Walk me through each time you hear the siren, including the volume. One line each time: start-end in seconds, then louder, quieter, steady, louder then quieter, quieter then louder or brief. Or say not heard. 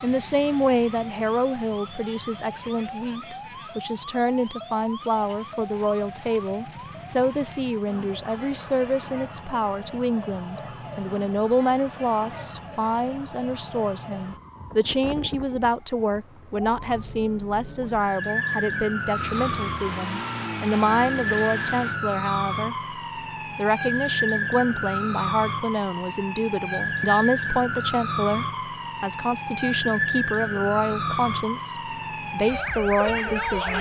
0.0-33.7 louder.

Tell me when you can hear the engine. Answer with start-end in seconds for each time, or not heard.
19.1-22.0.